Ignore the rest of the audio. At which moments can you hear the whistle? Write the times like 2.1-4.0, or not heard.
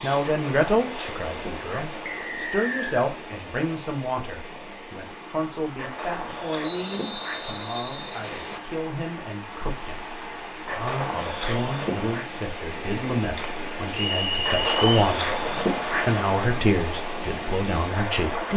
2.0-3.0, 6.6-8.6, 13.9-15.0.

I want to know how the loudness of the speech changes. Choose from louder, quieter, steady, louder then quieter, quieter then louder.
quieter then louder.